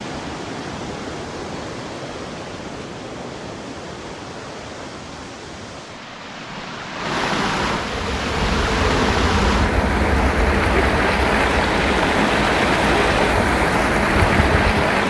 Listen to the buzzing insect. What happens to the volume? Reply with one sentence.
The volume of the buzzing insect stays about the same.